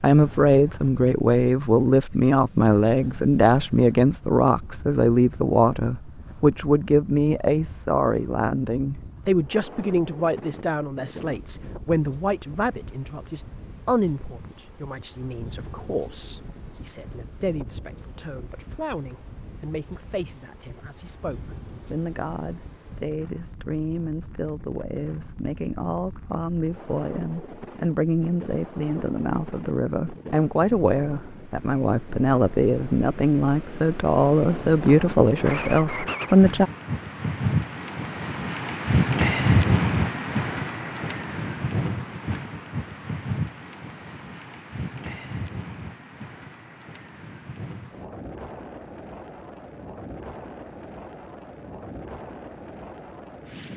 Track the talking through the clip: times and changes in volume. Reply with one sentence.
The talking can be heard from 0.0 to 36.7 s, getting quieter then louder.